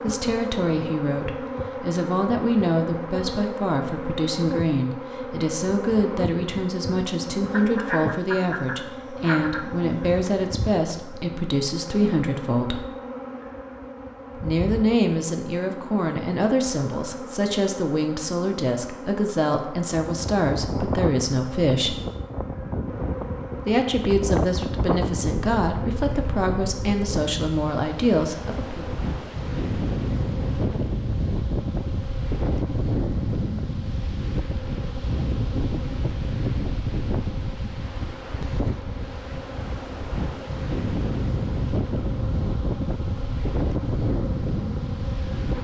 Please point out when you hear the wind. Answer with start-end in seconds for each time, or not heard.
20.1-45.5.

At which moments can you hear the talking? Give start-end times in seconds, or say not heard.
0.0-12.9, 14.3-22.0, 23.6-28.9.